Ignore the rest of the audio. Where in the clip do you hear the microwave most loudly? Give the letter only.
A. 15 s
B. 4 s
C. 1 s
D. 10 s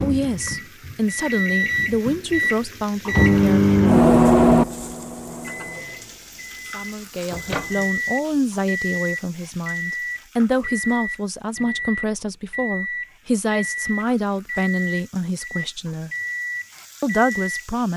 B.